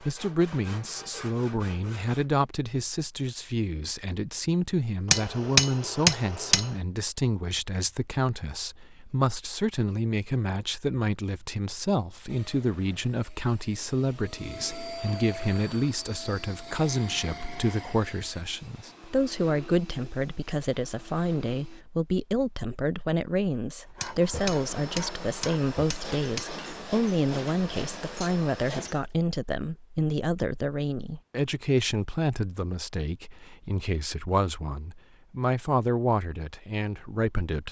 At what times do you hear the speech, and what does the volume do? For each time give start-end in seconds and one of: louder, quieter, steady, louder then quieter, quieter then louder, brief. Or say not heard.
0.0-37.6 steady.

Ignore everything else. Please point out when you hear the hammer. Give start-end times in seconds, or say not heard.
5.1-6.7, 24.0-26.6.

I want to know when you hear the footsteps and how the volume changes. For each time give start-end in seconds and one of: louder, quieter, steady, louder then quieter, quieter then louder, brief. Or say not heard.
not heard.